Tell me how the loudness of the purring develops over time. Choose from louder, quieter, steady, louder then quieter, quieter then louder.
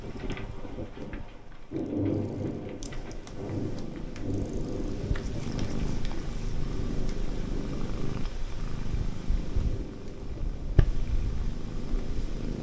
louder.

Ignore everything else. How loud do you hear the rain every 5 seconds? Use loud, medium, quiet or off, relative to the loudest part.
loud, medium, medium.